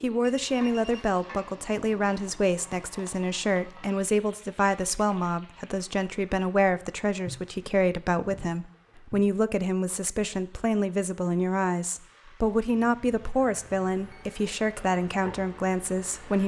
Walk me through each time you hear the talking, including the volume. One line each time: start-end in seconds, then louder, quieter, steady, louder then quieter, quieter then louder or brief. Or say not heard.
0.0-16.4 steady.